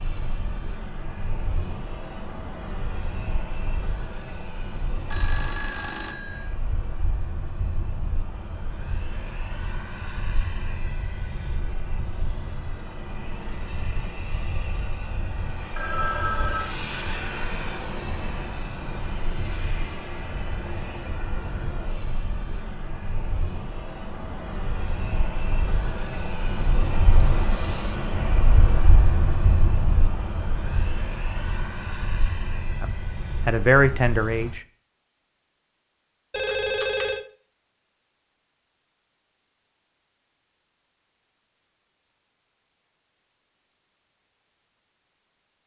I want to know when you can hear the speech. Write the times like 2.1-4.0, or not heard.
32.8-34.6.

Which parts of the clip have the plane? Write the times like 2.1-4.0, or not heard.
0.0-34.5.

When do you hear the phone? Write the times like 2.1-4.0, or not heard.
5.1-6.5, 15.8-16.7, 36.3-37.2.